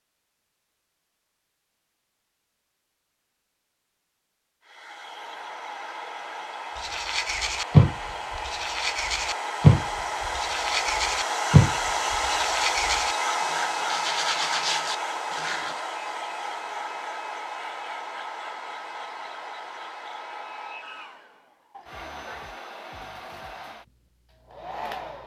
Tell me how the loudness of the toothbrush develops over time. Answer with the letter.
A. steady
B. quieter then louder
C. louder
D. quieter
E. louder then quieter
D.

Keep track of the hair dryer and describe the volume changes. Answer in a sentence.
The volume of the hair dryer goes up, then down.